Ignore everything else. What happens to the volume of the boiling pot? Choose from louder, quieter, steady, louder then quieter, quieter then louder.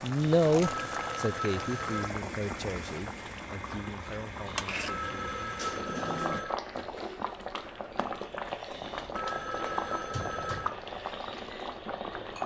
steady.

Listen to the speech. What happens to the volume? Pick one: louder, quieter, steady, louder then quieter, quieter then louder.
quieter.